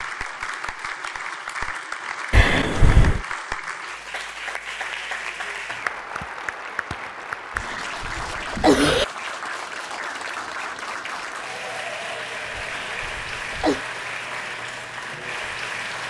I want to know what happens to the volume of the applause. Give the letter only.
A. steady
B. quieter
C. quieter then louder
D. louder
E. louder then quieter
A.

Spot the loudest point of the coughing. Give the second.
9 s.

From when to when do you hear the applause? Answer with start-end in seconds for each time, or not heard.
0.0-16.0.